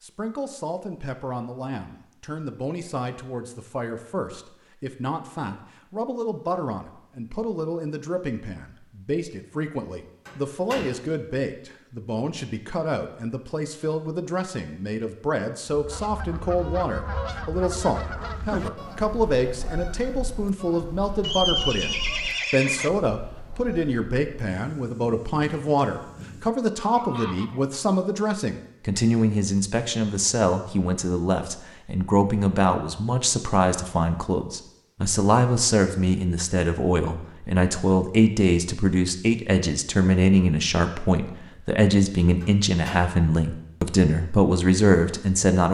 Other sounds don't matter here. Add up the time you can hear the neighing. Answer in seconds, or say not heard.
2 s.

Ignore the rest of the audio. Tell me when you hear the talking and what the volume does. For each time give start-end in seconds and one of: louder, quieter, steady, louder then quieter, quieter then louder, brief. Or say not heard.
0.0-45.6 louder.